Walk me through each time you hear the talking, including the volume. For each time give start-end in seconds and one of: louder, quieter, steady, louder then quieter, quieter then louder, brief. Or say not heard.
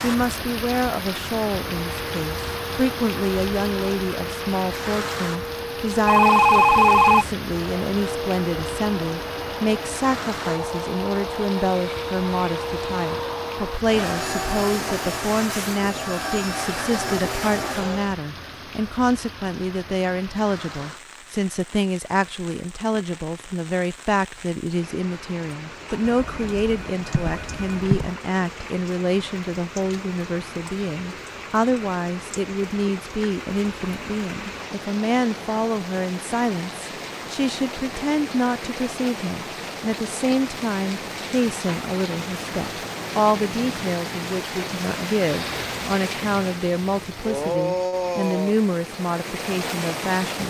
0.0-50.4 steady.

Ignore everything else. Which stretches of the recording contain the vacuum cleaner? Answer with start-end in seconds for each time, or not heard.
1.6-18.1.